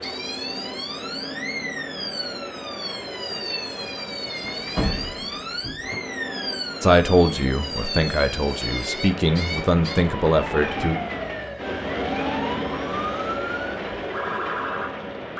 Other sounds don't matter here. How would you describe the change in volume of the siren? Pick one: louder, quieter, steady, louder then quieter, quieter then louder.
steady.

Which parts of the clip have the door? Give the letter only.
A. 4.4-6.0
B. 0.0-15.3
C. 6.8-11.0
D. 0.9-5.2
A.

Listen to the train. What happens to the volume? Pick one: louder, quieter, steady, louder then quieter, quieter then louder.
louder.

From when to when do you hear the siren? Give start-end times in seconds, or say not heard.
0.0-15.3.